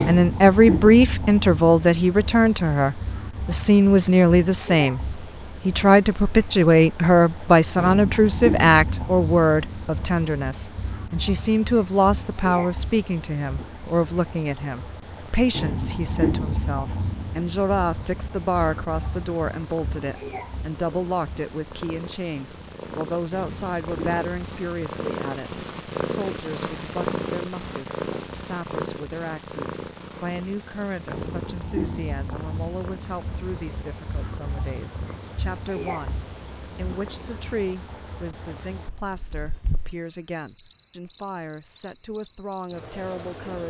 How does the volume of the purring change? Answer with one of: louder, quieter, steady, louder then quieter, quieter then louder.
louder then quieter.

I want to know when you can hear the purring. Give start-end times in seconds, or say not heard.
18.6-37.8.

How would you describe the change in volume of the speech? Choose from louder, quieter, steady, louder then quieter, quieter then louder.
quieter.